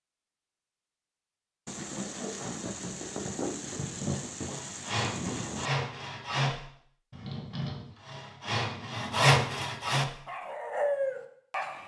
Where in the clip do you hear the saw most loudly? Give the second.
9 s.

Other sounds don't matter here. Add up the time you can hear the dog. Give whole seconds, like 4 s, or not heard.
2 s.